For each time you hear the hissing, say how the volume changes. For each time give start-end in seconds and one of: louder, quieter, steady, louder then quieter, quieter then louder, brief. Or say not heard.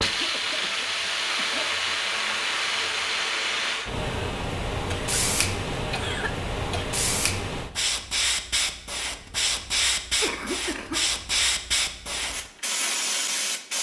0.0-13.7 steady.